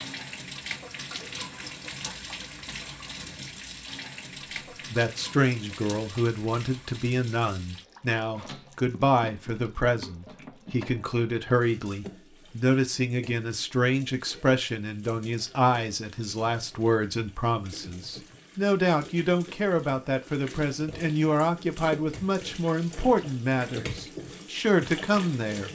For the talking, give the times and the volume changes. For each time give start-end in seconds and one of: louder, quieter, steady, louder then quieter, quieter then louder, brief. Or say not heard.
4.9-25.6 steady.